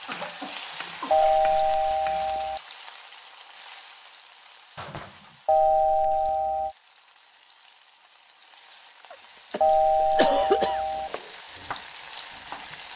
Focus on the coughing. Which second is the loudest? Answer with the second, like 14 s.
10 s.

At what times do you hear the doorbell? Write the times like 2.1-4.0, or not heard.
1.1-2.6, 5.5-6.8, 9.6-11.1.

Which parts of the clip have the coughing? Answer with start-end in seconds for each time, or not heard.
0.1-1.4, 4.8-5.3, 9.1-10.8.